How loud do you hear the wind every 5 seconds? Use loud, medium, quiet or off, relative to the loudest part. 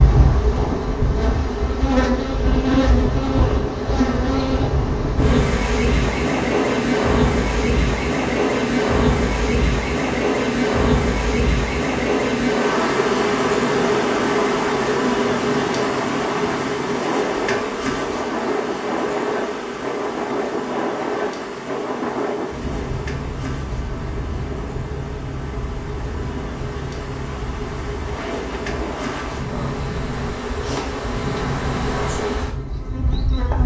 loud, loud, loud, loud, loud, medium, medium.